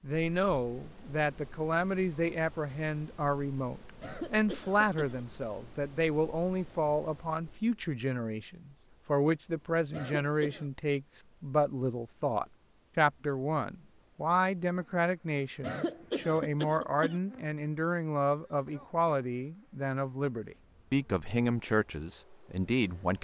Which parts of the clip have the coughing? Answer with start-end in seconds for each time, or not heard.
4.0-5.2, 9.9-10.7, 15.6-17.2.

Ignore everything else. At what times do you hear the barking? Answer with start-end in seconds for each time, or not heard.
not heard.